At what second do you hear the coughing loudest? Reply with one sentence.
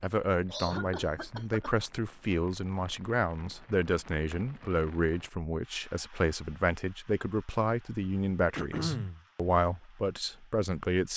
The loudest moment of the coughing is at 9 seconds.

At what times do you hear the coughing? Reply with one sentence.
The coughing can be heard from 0.5 to 1.8 s and from 8.6 to 9.2 s.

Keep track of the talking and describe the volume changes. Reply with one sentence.
The volume of the talking stays about the same.